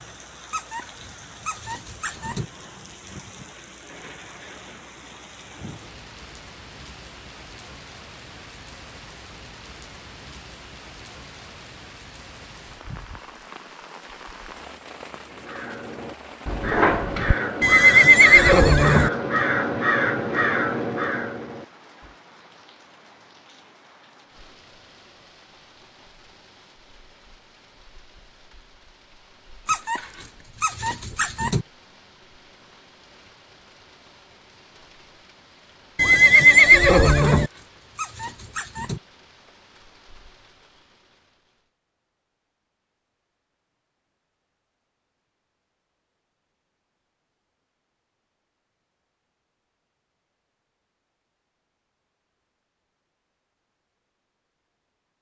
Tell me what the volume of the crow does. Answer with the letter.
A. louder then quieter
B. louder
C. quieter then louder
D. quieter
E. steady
E.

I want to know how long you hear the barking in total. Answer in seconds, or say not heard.
6 s.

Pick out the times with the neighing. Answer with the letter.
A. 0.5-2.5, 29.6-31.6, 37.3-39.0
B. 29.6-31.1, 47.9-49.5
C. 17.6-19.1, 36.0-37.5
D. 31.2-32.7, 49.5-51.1
C.